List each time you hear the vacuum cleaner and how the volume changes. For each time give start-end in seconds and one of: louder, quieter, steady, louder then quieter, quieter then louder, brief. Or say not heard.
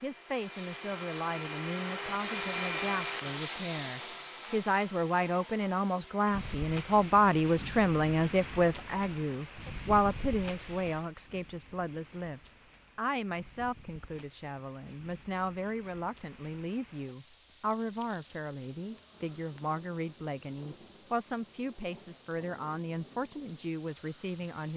0.0-7.2 louder then quieter.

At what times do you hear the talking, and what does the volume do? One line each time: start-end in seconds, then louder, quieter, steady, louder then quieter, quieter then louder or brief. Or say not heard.
0.0-24.7 louder then quieter.